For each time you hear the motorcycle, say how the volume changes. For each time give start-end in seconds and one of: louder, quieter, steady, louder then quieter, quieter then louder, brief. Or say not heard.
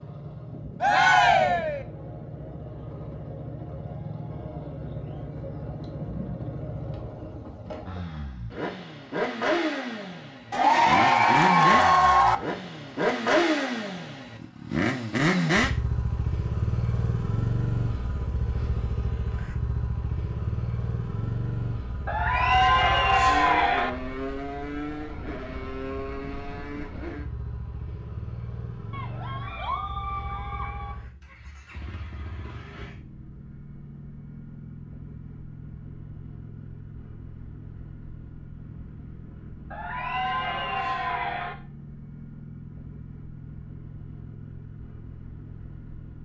0.0-46.2 louder then quieter.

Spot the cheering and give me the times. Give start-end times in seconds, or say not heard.
0.8-1.8, 10.5-12.3, 22.1-23.9, 28.9-30.9, 39.7-41.5.